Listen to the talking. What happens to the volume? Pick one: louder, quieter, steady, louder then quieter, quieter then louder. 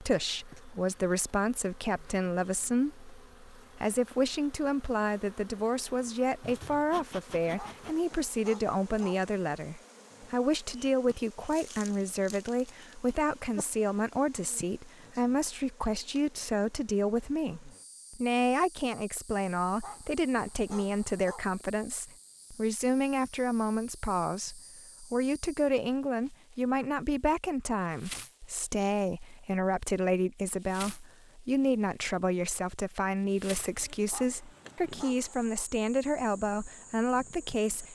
steady.